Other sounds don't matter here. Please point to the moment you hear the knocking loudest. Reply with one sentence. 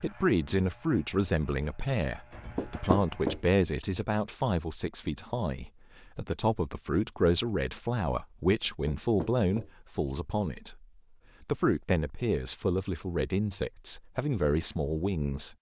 The volume of the knocking peaks at 3 seconds.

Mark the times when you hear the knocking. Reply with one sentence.
You can hear the knocking from 2.5 to 3.4 s and from 8.8 to 9.7 s.